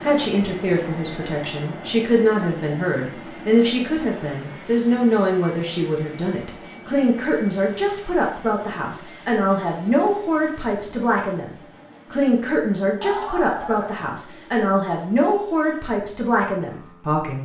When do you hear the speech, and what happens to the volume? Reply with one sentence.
The speech can be heard from 0.0 to 17.4 s, at a steady volume.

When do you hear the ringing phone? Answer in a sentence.
The ringing phone can be heard from 13.0 to 14.1 s.